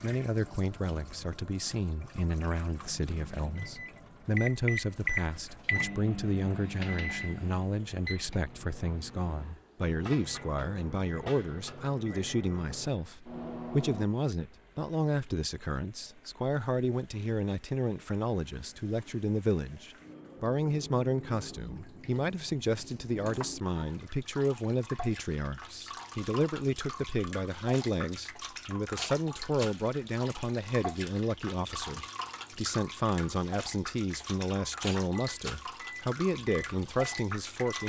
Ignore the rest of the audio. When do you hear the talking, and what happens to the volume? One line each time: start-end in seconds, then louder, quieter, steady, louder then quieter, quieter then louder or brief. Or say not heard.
0.0-37.8 steady.